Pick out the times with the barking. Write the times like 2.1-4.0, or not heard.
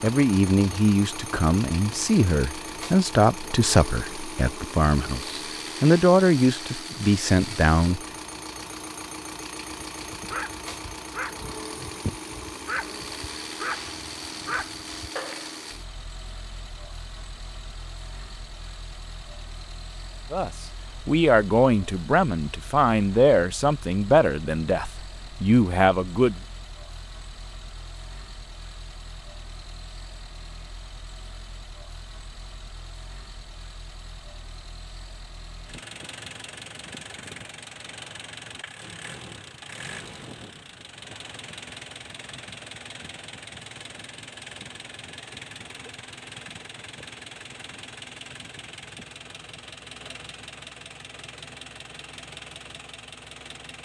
9.9-15.5.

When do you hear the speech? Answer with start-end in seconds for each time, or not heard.
0.0-8.0, 20.3-26.4.